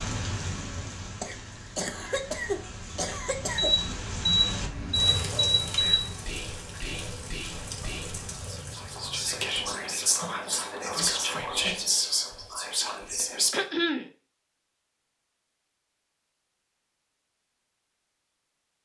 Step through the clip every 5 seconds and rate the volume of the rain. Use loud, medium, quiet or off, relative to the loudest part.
loud, loud, off, off.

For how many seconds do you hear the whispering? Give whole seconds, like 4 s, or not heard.
8 s.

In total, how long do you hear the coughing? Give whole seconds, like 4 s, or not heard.
3 s.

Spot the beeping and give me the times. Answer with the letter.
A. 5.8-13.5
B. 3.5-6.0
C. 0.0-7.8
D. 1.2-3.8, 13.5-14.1
B.